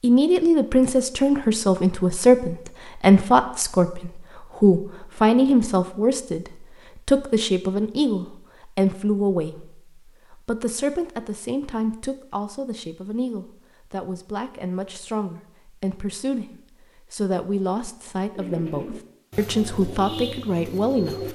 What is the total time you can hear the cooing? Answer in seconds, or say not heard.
3 s.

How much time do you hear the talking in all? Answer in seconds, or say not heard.
21 s.